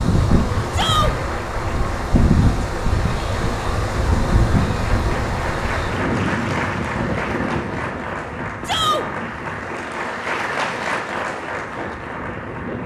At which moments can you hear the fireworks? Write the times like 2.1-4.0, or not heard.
not heard.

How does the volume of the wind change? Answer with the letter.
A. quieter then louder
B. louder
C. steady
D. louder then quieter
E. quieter
E.